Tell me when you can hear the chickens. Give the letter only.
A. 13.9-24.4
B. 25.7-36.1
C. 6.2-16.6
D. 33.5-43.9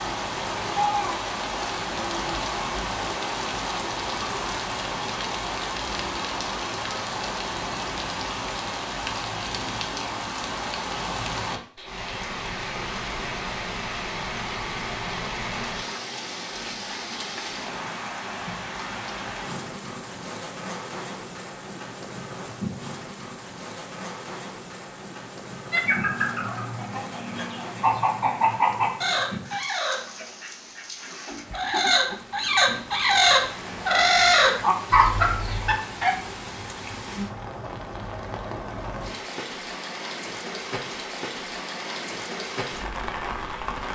B.